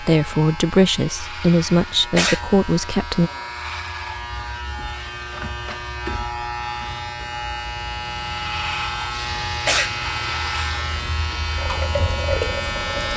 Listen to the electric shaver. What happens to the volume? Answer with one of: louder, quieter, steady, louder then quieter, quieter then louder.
louder.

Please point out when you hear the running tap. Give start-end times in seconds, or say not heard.
9.1-13.1.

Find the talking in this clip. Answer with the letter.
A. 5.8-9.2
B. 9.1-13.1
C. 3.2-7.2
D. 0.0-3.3
D.